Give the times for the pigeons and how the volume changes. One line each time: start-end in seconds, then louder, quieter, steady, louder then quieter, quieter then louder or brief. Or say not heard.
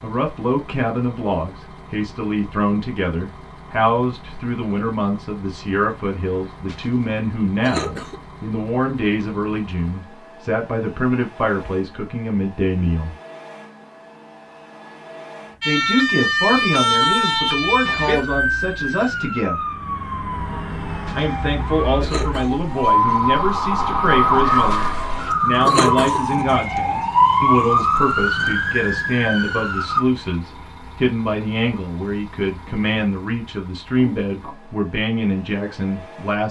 not heard.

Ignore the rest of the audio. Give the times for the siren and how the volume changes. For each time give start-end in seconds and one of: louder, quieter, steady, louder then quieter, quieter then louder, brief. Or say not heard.
15.6-30.1 quieter then louder.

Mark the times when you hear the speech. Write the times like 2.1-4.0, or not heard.
0.0-13.1, 15.7-19.6, 21.1-36.4.